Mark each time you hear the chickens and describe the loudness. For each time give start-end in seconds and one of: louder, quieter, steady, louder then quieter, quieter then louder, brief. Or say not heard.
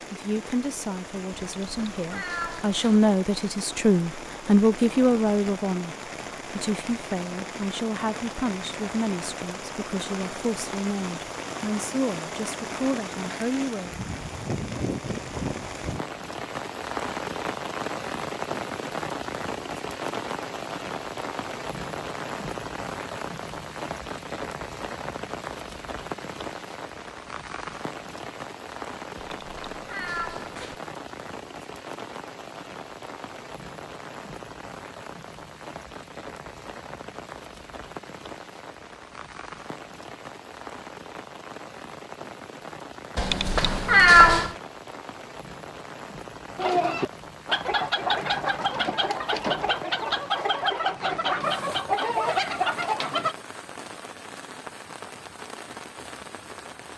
46.5-53.4 steady.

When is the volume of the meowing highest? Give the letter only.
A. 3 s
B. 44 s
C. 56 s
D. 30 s
B.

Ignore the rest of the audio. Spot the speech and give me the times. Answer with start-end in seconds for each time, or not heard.
0.1-13.9.